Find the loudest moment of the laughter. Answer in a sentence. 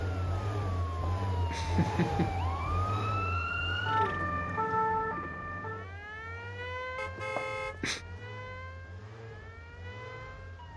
The volume of the laughter peaks at 2 seconds.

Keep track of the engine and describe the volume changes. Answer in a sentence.
The loudness of the engine goes down.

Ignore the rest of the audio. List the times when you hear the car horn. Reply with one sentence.
You can hear the car horn from 7.0 to 8.2 s.